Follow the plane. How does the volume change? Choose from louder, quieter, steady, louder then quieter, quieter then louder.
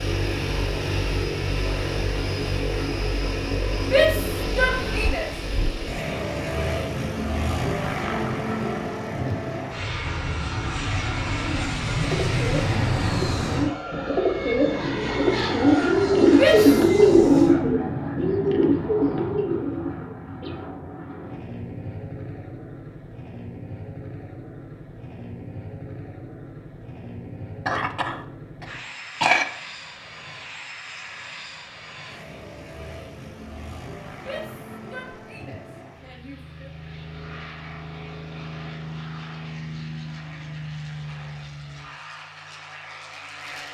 quieter.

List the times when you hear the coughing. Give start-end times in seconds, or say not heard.
27.6-29.4.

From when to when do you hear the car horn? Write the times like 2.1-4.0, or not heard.
not heard.